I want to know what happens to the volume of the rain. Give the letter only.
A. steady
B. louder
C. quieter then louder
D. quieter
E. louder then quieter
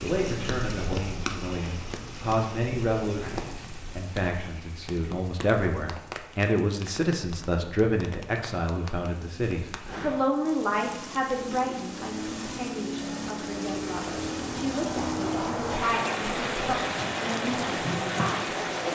C.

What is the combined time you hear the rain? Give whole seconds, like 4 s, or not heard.
19 s.